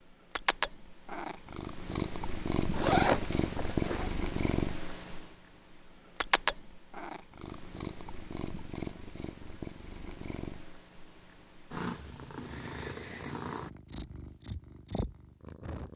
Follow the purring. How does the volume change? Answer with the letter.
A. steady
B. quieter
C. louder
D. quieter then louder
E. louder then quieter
B.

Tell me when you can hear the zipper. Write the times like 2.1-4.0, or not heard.
2.8-4.1.